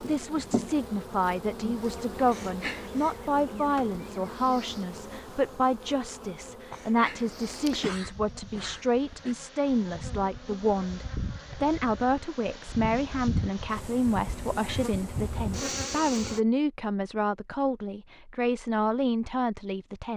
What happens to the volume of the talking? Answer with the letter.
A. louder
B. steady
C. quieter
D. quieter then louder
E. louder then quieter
B.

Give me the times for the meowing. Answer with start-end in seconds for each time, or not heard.
not heard.